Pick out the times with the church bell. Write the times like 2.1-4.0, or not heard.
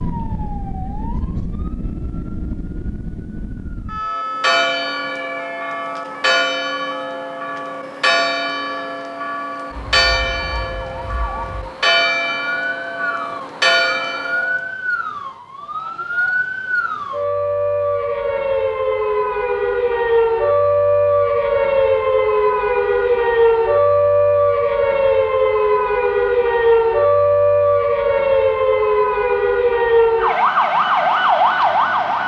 4.0-14.7.